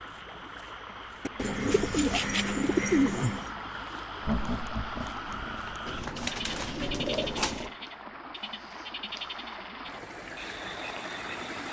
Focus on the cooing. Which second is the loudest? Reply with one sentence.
The loudest moment of the cooing is at 3 seconds.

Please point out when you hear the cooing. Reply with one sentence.
You can hear the cooing from 1.2 to 3.5 s and from 5.8 to 7.8 s.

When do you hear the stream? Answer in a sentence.
The stream can be heard from 0.0 to 11.6 s.